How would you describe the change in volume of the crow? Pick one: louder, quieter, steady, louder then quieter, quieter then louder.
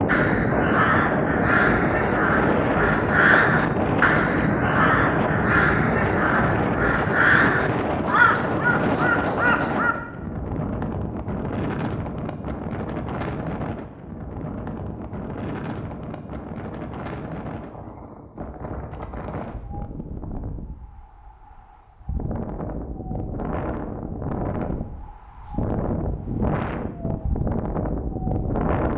steady.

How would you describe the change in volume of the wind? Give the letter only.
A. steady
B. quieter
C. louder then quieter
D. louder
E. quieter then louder
E.